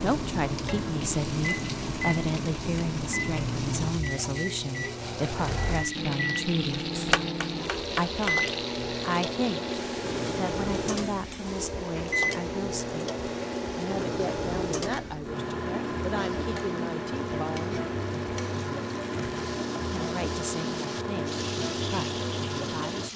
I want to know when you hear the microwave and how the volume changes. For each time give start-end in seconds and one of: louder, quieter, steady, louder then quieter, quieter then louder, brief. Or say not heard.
0.0-23.1 steady.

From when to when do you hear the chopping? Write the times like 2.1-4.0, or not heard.
7.0-8.4.